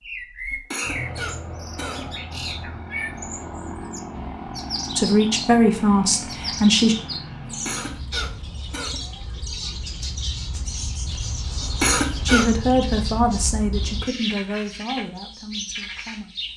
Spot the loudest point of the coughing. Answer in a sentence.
The loudest moment of the coughing is at 12 seconds.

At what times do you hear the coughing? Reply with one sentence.
The coughing can be heard from 0.5 to 2.0 s, from 7.5 to 9.0 s and from 11.6 to 12.5 s.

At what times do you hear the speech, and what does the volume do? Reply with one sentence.
You can hear the speech briefly from 5.0 to 7.0 s; and from 12.2 to 16.3 s, getting quieter.